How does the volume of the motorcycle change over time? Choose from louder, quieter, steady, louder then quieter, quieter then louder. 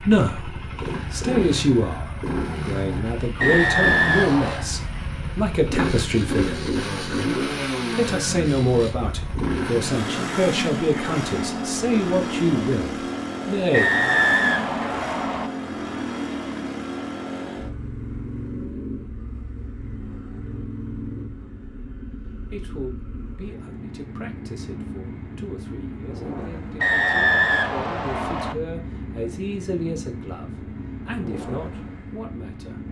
quieter.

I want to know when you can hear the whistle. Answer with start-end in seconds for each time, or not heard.
3.4-4.7, 13.7-15.5, 26.8-28.6.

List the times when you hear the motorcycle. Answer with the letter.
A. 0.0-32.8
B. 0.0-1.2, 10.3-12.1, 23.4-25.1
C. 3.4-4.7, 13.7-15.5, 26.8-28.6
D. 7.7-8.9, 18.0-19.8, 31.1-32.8
A.